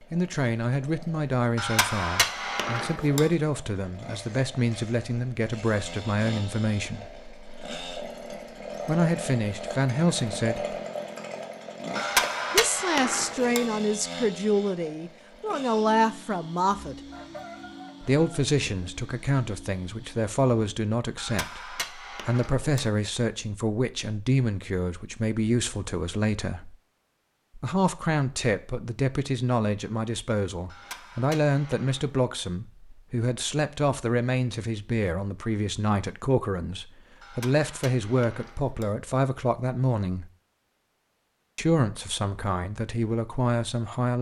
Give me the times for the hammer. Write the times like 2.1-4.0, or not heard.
1.6-3.3, 11.9-13.7, 21.1-22.9, 30.6-32.2, 37.2-39.0.